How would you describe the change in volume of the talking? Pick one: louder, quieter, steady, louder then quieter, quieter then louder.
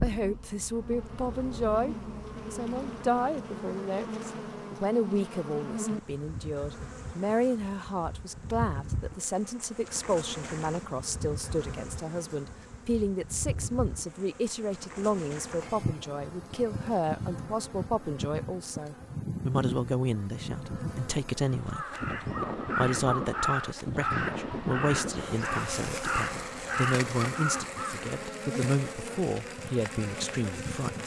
steady.